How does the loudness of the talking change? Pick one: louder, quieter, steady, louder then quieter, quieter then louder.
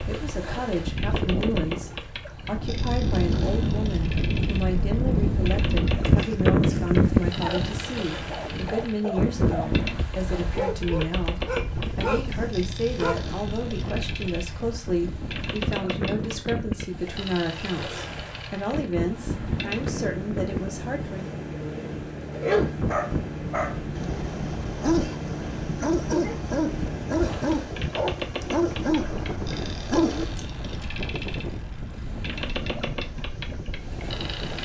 steady.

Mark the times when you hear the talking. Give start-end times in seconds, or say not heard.
0.0-21.3.